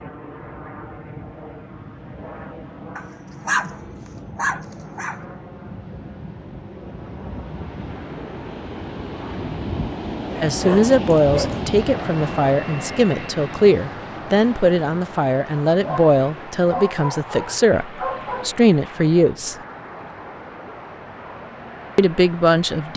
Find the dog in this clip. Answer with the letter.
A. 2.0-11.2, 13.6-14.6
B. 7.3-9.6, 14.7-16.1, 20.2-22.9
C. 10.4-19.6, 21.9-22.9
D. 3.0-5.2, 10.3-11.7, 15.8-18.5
D.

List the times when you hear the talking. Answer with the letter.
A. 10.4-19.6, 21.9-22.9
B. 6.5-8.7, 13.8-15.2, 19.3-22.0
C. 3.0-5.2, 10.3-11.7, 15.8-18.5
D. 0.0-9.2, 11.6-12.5
A.